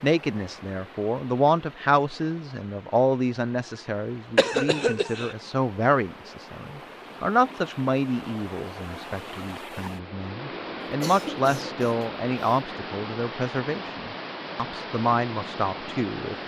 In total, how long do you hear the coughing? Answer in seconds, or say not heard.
3 s.